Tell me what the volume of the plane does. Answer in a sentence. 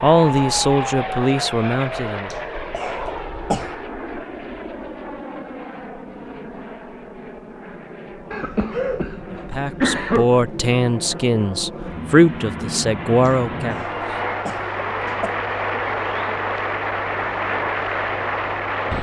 The volume of the plane goes down, then up.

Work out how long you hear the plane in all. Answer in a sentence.
The plane can be heard for 19 seconds in total.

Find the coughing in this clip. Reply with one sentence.
You can hear the coughing from 2.3 to 3.7 s, from 8.3 to 10.2 s and from 13.2 to 15.3 s.